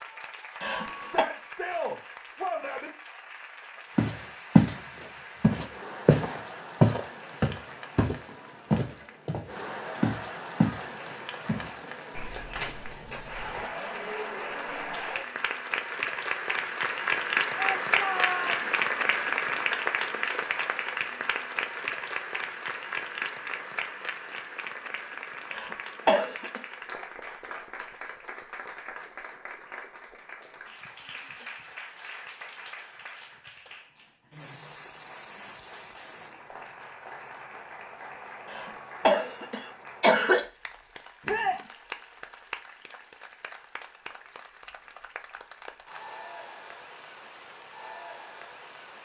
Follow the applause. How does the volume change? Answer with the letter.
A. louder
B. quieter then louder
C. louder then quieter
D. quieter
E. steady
C.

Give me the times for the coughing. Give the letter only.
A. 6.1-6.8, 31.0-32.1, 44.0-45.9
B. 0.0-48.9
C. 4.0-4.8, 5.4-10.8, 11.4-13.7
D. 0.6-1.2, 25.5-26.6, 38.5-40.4
D.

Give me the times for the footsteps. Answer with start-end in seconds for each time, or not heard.
4.0-4.8, 5.4-10.8, 11.4-13.7.